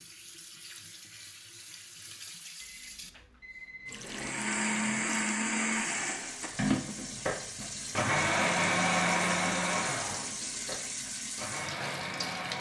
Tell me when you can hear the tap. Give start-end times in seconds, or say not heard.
0.0-12.5.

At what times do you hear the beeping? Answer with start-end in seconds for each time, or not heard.
2.6-4.1.